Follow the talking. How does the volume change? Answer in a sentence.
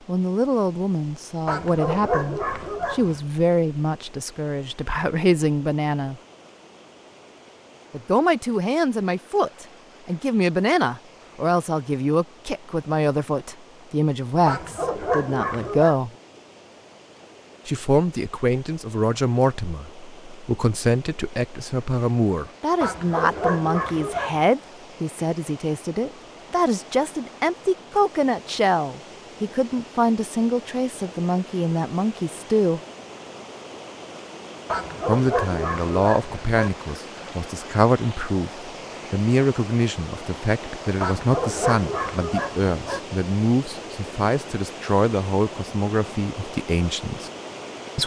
The loudness of the talking stays about the same.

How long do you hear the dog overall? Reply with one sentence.
The dog can be heard for 9 seconds in total.